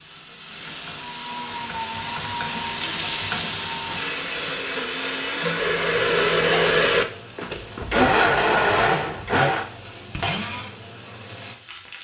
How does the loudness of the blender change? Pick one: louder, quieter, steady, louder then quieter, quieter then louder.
louder.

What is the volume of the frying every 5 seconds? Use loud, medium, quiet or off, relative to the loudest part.
loud, medium, medium.